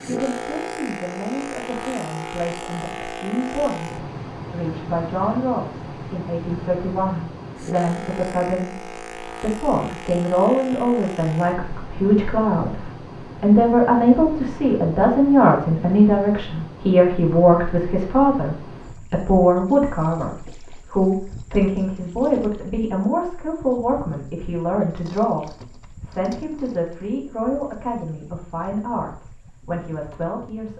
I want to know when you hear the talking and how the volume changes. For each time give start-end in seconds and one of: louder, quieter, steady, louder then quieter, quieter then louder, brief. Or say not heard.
0.1-30.7 louder then quieter.